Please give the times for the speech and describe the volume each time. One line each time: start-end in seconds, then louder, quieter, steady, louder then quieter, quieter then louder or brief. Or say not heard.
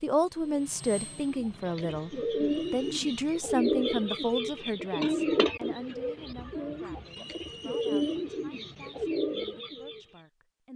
0.0-10.7 quieter.